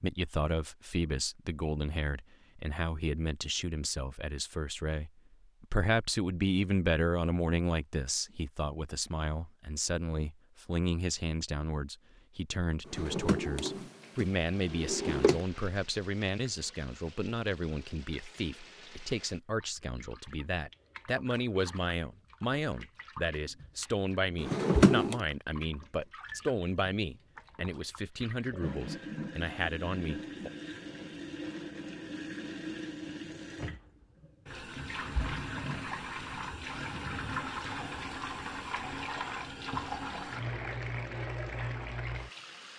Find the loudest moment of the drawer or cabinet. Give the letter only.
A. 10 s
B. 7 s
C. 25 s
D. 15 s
C.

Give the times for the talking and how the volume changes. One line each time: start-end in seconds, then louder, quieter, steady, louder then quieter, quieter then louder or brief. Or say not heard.
0.0-30.5 steady.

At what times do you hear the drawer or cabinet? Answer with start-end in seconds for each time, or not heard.
12.9-15.4, 24.4-25.2.